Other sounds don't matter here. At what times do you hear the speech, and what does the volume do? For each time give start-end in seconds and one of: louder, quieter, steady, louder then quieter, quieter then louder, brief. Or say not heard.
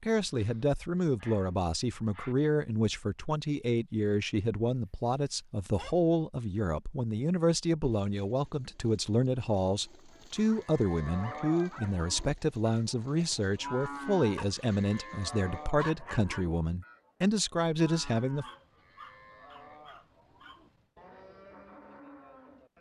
0.0-18.4 steady.